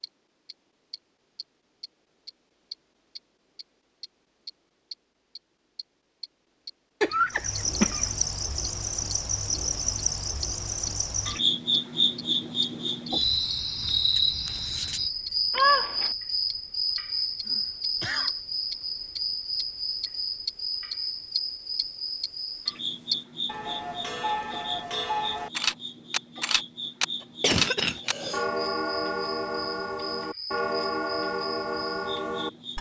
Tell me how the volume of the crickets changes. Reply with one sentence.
The loudness of the crickets goes down.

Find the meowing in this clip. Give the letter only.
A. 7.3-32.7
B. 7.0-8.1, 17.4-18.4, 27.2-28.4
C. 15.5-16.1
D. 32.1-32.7
C.